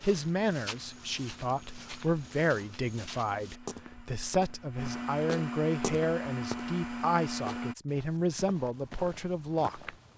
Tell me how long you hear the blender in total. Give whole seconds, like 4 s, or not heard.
8 s.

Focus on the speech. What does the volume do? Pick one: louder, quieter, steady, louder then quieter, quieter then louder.
steady.